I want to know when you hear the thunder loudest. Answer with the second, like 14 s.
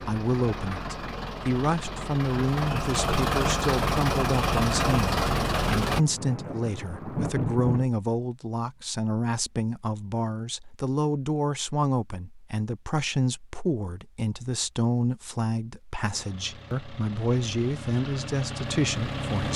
7 s.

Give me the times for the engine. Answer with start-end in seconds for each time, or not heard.
0.0-6.0, 16.1-19.5.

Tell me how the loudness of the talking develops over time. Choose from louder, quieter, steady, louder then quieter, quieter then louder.
steady.